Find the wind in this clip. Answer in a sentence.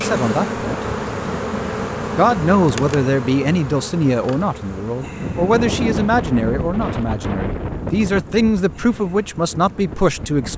You can hear the wind from 5.0 to 10.5 s.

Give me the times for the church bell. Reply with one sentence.
The church bell can't be heard in this clip.